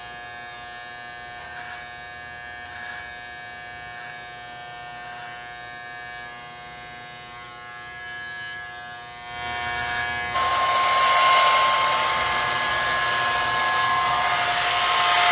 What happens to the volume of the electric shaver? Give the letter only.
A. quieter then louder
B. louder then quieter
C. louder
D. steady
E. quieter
C.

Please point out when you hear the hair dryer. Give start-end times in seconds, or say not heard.
10.3-15.2.